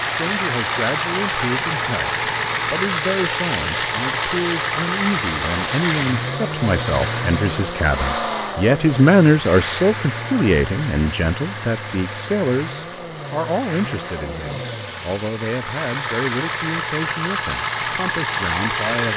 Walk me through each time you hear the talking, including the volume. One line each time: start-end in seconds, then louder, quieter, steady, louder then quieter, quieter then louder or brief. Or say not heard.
0.1-19.1 louder then quieter.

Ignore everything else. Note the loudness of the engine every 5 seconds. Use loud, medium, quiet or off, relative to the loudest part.
loud, loud, medium, loud.